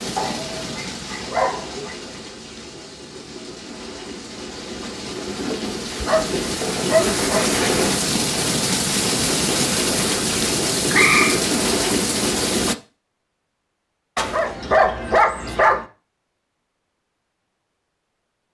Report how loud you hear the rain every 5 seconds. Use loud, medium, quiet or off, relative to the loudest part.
quiet, loud, loud, off.